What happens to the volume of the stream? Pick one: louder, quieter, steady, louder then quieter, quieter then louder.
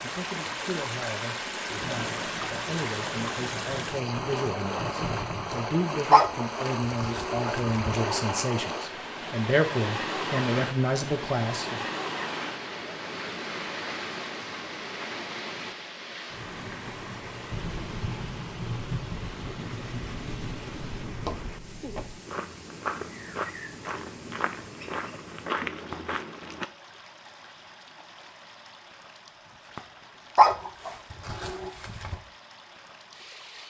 quieter.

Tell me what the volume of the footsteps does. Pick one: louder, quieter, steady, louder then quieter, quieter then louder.
louder.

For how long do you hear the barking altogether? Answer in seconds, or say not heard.
4 s.